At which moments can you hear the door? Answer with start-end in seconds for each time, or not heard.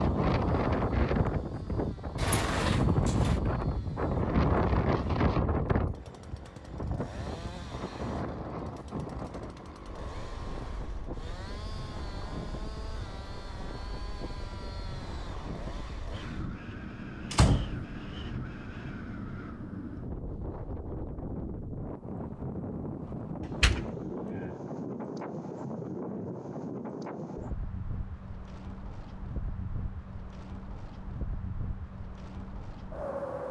2.1-3.4, 17.3-17.9, 23.4-24.5.